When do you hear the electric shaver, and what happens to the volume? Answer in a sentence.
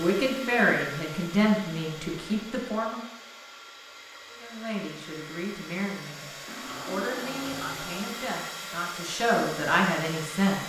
The electric shaver can't be heard in this clip.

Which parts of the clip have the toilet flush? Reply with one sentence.
The toilet flush can be heard from 6.5 to 8.4 s.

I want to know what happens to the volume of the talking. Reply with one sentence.
The volume of the talking goes down, then up.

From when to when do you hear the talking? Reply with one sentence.
The talking can be heard from 0.0 to 3.0 s and from 4.2 to 10.6 s.